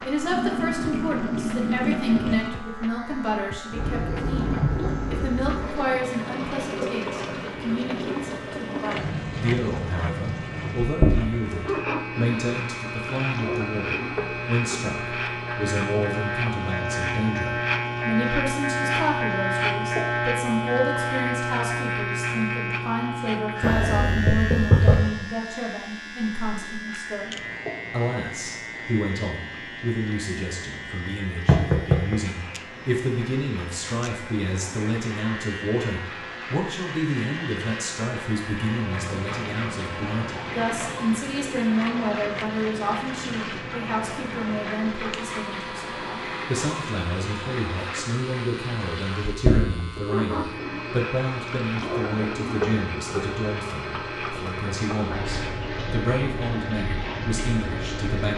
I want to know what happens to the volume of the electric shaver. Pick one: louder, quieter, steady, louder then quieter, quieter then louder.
louder then quieter.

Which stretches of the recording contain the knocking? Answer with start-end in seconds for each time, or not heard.
23.6-25.1, 31.4-32.1.